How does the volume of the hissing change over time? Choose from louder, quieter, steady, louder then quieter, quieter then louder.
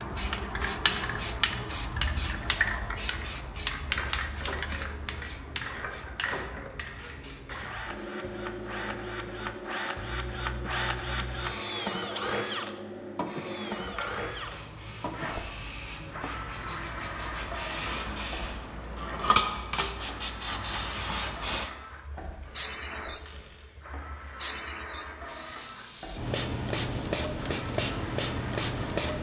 quieter then louder.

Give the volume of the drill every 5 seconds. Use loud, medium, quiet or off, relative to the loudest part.
medium, medium, loud, medium, medium, medium.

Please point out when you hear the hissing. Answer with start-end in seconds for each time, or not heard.
0.0-29.1.